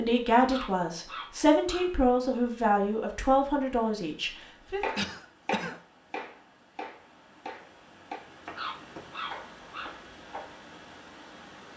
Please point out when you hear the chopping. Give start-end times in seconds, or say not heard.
4.8-10.5.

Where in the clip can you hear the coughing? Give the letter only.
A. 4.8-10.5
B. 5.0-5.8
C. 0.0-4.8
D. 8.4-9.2
B.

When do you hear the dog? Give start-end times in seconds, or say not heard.
0.5-1.9, 8.6-9.9.